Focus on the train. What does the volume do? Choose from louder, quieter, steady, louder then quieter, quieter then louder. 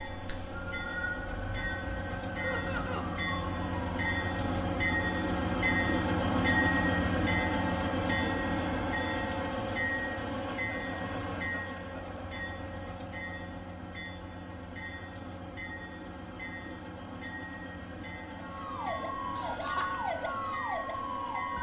louder then quieter.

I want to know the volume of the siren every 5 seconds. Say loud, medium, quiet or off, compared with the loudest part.
medium, off, off, loud, loud.